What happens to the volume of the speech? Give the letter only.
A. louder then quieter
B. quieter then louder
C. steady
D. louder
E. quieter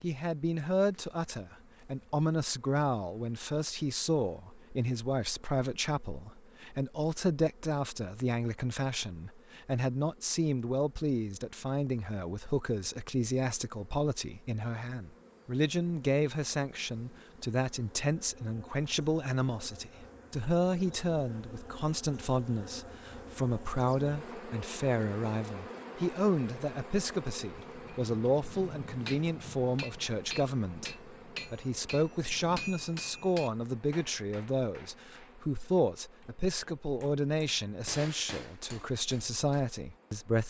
C.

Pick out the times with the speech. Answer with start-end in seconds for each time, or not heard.
0.0-40.4.